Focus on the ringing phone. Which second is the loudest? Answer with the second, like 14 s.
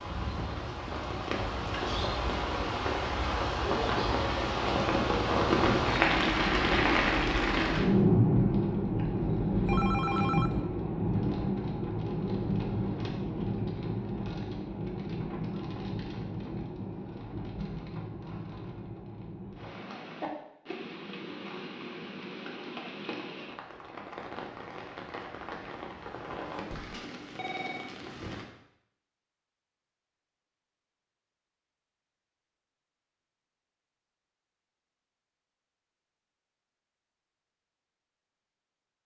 10 s.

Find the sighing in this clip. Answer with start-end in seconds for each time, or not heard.
not heard.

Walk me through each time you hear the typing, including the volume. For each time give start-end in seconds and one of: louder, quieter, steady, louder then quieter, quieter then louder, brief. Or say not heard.
not heard.